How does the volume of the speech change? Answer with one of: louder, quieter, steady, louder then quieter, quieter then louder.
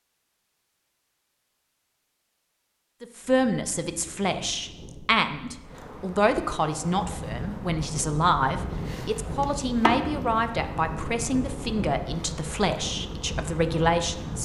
steady.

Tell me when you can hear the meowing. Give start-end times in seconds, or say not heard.
not heard.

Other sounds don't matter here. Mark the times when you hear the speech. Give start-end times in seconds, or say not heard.
3.0-14.4.